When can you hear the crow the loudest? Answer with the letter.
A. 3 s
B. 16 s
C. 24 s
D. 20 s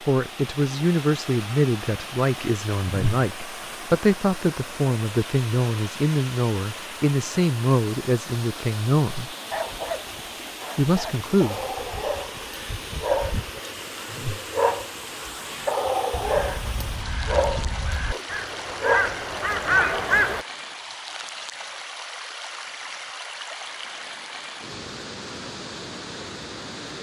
D.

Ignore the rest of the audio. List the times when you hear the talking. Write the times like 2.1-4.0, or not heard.
0.1-9.3, 10.8-11.6.